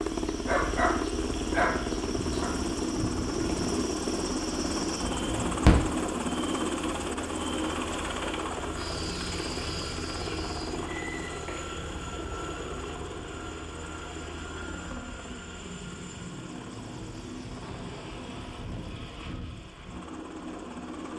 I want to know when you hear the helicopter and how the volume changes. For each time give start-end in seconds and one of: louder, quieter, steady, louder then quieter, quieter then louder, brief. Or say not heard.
0.0-21.1 quieter.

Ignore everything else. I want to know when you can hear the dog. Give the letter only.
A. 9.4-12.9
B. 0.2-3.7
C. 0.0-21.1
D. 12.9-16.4
B.